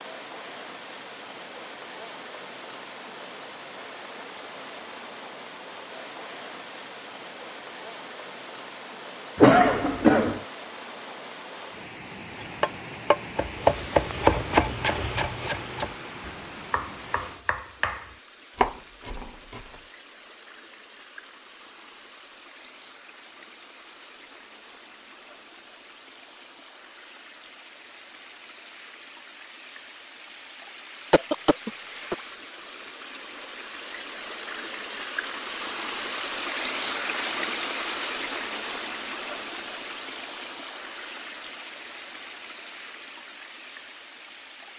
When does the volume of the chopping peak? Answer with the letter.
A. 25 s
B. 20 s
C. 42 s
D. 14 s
D.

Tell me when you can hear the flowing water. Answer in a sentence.
You can hear the flowing water from 0.0 to 44.7 s.